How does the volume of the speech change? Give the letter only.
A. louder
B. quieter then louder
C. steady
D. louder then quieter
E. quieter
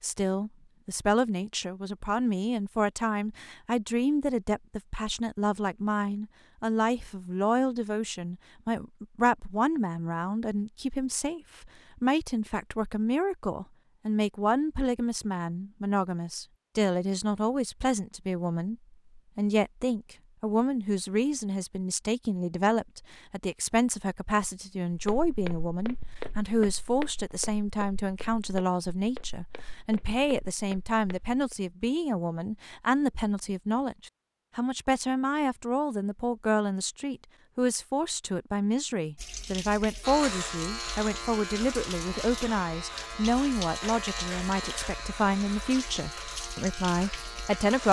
C.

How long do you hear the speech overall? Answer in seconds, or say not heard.
48 s.